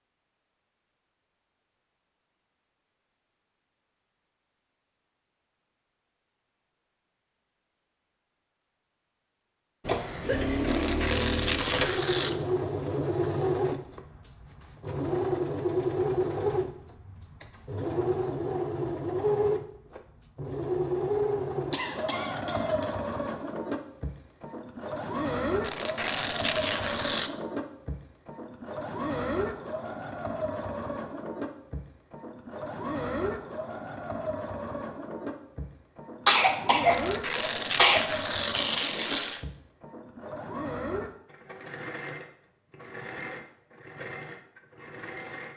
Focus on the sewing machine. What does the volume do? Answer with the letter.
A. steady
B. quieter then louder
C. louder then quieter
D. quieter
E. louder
D.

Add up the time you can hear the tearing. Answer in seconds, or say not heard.
6 s.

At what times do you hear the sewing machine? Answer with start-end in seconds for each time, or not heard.
9.8-45.5.